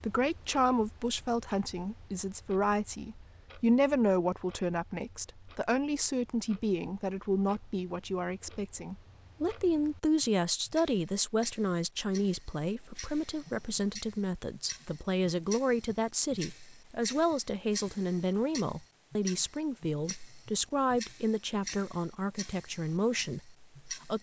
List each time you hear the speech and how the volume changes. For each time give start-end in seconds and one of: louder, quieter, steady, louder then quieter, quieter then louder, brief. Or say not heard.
0.0-24.1 steady.